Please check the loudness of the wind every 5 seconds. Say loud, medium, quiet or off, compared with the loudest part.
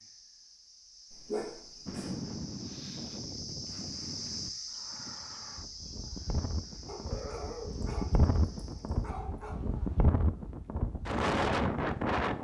medium, medium, loud.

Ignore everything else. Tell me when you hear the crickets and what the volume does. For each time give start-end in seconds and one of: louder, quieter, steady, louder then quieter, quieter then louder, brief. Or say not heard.
0.0-9.2 louder then quieter.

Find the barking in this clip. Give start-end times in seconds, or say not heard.
1.1-2.1, 6.8-9.6.